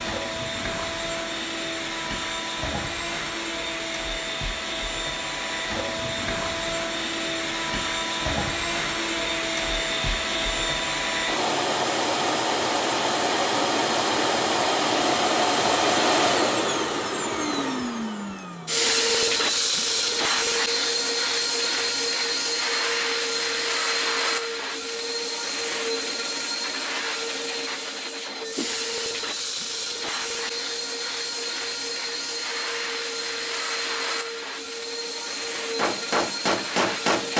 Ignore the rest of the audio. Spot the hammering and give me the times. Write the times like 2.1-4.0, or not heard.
35.8-37.3.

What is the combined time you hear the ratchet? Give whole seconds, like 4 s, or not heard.
not heard.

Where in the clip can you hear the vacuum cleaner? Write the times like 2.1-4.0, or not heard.
0.0-37.3.